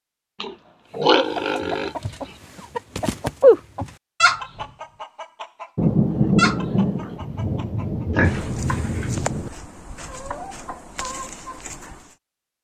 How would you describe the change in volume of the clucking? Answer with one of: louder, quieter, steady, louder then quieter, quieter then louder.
louder then quieter.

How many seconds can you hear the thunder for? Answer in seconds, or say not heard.
4 s.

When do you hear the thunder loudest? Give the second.
6 s.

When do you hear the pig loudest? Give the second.
1 s.